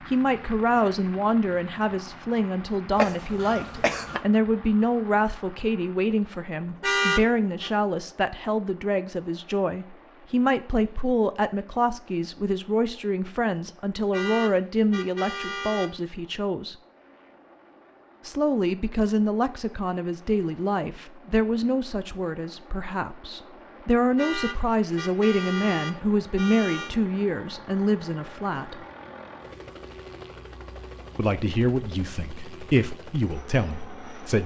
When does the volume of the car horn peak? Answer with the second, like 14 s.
7 s.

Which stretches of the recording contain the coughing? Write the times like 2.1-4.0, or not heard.
3.0-4.2.